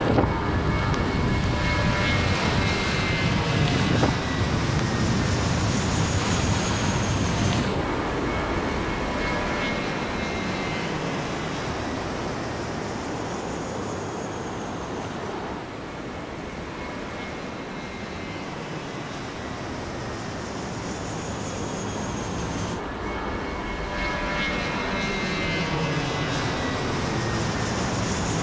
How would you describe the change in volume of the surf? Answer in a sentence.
The loudness of the surf goes down.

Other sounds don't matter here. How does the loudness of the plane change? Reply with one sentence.
The volume of the plane goes down, then up.